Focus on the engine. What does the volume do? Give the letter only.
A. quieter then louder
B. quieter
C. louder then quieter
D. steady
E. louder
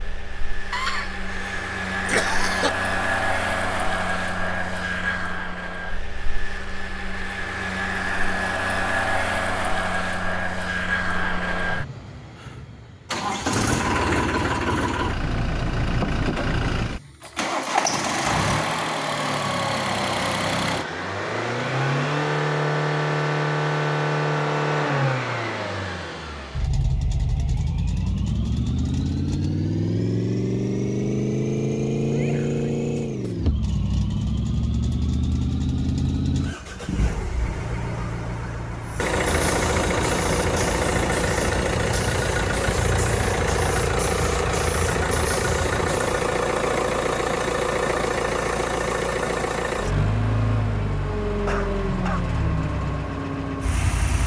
D.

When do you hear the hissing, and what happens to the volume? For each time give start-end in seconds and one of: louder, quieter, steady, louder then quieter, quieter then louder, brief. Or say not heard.
38.8-46.3 steady.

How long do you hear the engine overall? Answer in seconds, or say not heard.
54 s.